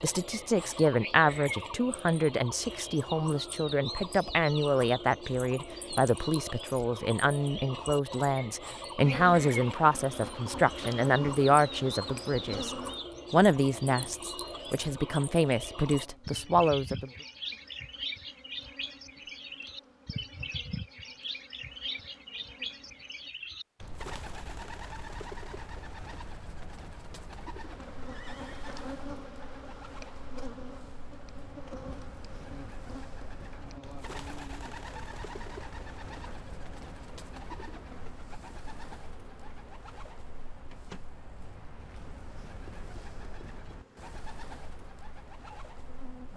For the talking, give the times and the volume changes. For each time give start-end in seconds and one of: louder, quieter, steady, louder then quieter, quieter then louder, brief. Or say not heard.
0.0-17.1 steady.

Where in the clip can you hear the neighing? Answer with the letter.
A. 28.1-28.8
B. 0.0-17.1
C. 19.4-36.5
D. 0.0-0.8
A.